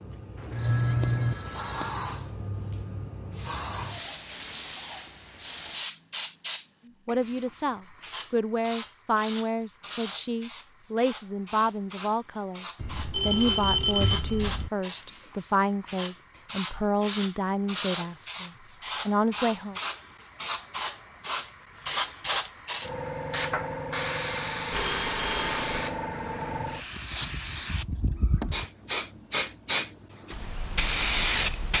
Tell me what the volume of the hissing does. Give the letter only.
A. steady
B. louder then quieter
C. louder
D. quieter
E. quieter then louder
E.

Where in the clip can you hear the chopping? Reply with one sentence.
You can't hear the chopping here.